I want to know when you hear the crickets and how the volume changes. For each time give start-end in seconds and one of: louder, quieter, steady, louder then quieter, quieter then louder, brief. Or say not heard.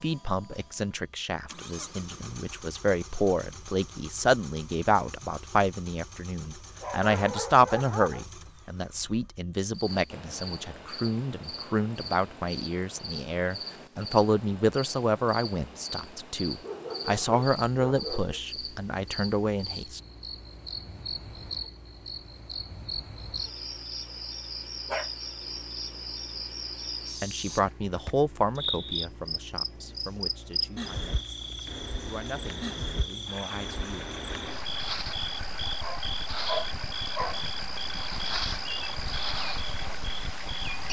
9.7-40.8 louder.